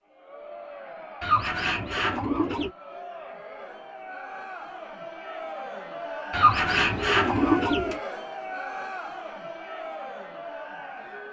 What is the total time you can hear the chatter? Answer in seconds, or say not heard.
11 s.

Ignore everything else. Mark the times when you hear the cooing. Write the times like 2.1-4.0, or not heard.
1.2-2.7, 6.3-8.0.